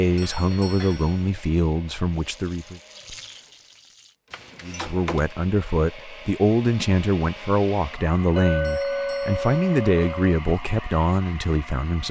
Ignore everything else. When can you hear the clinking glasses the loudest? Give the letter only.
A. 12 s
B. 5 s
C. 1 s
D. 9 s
D.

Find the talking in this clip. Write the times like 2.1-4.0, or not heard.
0.0-2.8, 4.6-12.0.